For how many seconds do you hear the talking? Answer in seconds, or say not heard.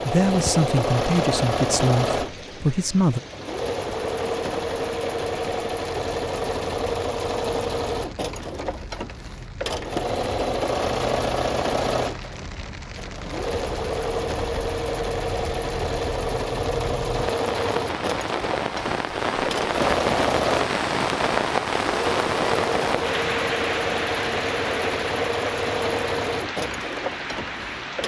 3 s.